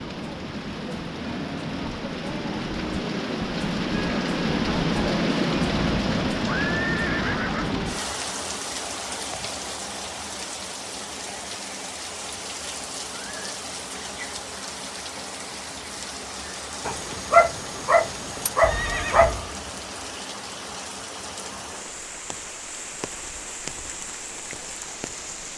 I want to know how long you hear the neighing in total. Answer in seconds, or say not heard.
2 s.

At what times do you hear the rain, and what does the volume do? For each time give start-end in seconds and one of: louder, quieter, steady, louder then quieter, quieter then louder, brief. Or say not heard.
0.0-25.5 quieter.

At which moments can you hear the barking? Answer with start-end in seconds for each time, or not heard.
16.9-19.4.